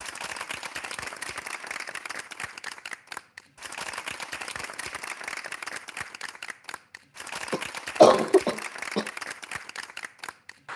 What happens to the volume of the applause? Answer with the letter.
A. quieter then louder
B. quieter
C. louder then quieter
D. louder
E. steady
E.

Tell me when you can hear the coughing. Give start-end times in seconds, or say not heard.
7.5-9.1.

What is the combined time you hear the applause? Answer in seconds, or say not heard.
11 s.